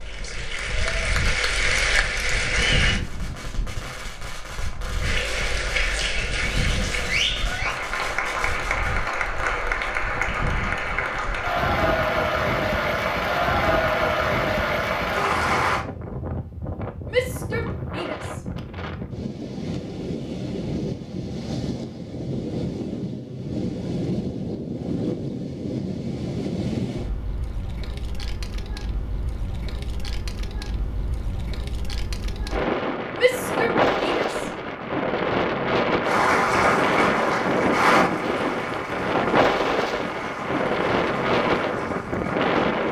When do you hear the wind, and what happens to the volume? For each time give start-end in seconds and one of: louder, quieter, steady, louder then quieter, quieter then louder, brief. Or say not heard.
0.0-42.8 louder.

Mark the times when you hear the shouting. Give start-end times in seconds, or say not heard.
17.1-18.4, 33.1-34.4.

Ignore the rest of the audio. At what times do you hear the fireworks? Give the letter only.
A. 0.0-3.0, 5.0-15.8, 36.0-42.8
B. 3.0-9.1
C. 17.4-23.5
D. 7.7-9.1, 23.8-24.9
B.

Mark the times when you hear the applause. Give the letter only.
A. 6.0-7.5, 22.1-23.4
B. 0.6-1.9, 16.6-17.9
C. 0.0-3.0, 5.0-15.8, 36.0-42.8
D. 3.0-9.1
C.